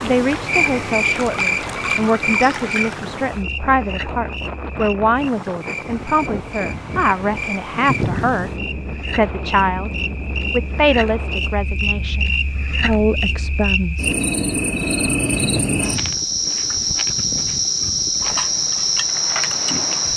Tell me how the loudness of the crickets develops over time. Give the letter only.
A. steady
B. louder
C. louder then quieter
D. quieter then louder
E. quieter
D.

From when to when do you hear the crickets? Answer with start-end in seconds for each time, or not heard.
0.0-20.1.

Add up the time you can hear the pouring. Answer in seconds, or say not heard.
3 s.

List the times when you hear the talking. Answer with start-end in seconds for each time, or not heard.
0.0-9.9, 10.5-14.1.